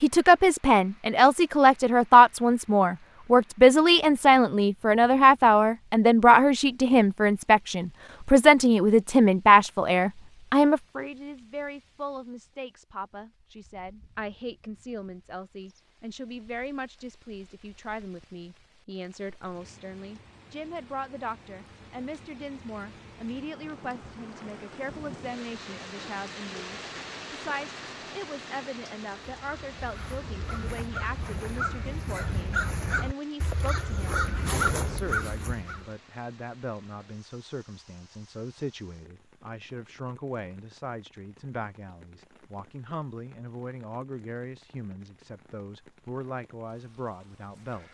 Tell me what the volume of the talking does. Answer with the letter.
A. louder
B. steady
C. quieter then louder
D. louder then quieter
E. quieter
E.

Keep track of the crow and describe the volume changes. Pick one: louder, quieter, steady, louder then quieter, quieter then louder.
louder.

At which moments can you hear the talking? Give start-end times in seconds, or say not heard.
0.0-47.8.